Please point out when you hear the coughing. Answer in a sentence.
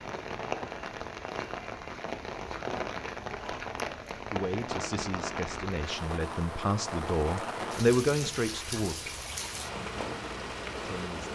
You can't hear the coughing here.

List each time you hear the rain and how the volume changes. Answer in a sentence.
You can hear the rain from 0.0 to 11.2 s, at a steady volume.